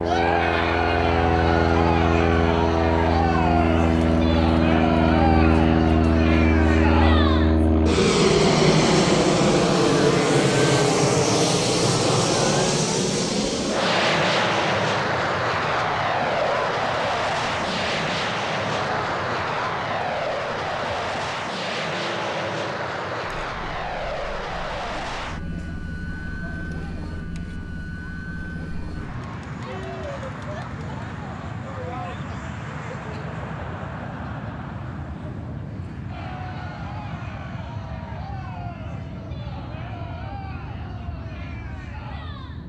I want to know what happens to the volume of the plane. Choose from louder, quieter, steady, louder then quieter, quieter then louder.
quieter.